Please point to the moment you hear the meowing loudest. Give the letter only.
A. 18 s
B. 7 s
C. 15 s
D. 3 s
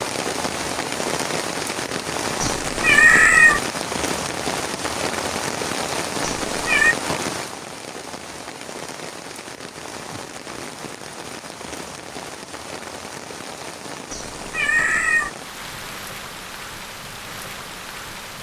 D.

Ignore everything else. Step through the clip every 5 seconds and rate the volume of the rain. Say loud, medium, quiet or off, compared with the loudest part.
loud, loud, medium, medium.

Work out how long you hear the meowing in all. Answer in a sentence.
The meowing can be heard for 3 seconds in total.